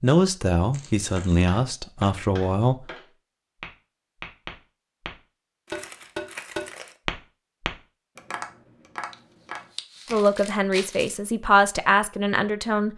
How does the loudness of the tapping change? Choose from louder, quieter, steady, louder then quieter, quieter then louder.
louder then quieter.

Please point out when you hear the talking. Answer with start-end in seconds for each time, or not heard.
0.0-2.9, 10.1-12.9.